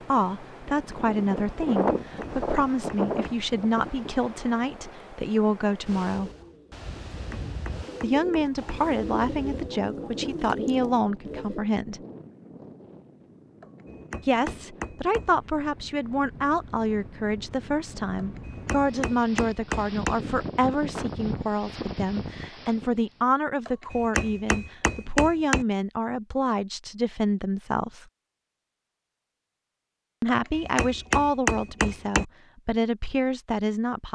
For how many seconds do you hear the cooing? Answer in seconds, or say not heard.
6 s.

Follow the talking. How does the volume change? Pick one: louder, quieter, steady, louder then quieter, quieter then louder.
steady.